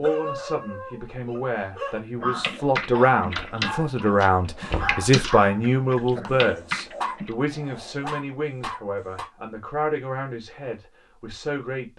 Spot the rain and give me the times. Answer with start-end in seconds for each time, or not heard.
not heard.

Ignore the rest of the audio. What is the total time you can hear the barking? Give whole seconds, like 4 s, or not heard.
9 s.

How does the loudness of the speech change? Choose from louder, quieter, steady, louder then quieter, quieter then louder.
louder then quieter.